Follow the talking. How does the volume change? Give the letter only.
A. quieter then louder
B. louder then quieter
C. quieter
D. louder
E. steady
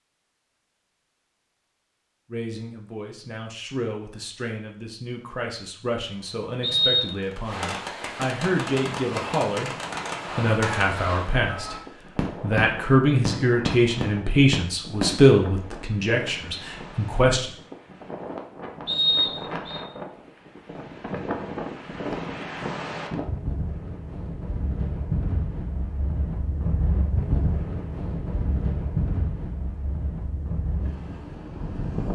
D.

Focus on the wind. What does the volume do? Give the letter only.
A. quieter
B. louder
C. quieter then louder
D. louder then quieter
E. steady
B.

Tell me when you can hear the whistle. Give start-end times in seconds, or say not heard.
6.6-7.2, 18.9-19.8.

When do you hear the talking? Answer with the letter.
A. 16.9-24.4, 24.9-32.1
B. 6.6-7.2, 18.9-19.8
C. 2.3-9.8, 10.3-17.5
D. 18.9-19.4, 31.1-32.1
C.